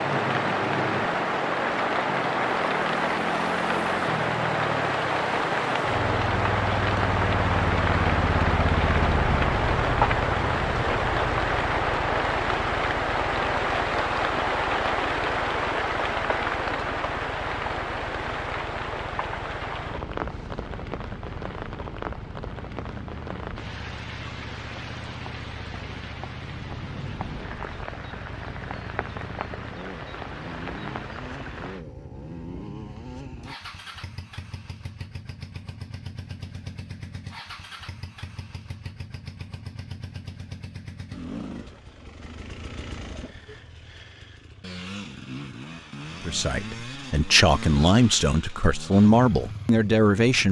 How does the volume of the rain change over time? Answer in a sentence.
The volume of the rain goes down.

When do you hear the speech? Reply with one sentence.
You can hear the speech from 46.2 to 50.4 s.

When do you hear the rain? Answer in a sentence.
You can hear the rain from 0.0 to 31.9 s.